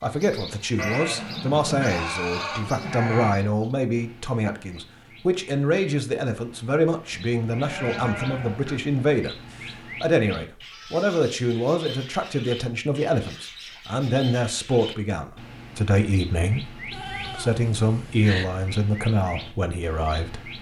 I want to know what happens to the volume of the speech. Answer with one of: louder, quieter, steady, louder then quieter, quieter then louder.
steady.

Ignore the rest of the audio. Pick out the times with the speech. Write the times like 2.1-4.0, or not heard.
0.0-20.5.